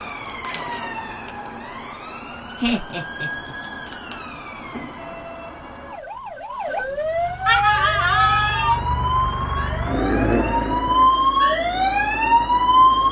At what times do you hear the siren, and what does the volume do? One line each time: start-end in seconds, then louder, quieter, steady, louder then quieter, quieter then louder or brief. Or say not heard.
0.0-13.0 louder.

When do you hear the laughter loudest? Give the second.
8 s.